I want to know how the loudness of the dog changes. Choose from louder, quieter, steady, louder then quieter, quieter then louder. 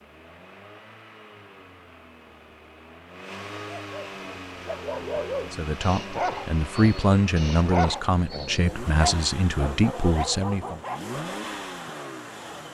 steady.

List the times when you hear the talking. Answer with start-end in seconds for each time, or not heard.
5.4-10.8.